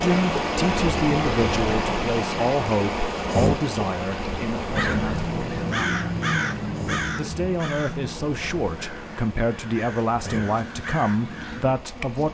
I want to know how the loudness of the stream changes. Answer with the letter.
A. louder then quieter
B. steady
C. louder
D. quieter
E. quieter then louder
D.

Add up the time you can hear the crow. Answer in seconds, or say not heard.
7 s.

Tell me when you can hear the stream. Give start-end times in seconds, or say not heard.
0.0-12.2.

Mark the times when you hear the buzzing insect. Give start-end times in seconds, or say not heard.
0.0-12.2.